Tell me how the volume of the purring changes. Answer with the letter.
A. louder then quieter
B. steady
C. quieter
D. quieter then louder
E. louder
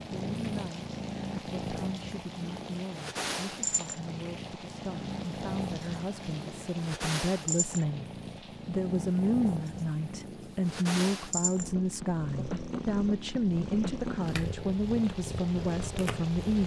B.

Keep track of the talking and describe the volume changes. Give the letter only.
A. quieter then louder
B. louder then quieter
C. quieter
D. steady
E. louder
E.